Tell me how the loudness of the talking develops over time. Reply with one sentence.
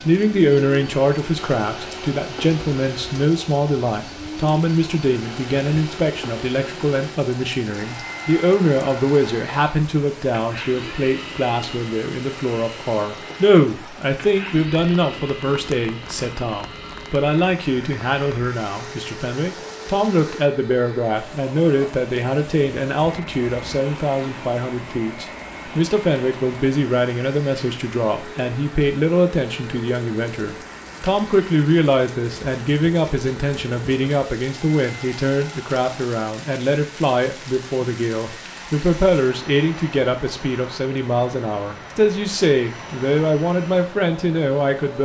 The loudness of the talking stays about the same.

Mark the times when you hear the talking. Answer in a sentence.
You can hear the talking from 0.0 to 45.0 s.